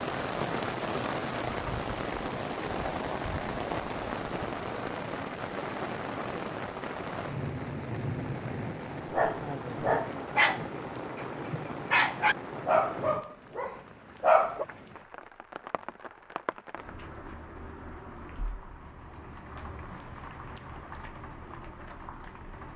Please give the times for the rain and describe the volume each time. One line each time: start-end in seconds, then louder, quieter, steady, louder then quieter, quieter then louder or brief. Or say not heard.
0.0-22.7 quieter.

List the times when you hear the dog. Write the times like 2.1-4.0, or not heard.
9.1-14.7.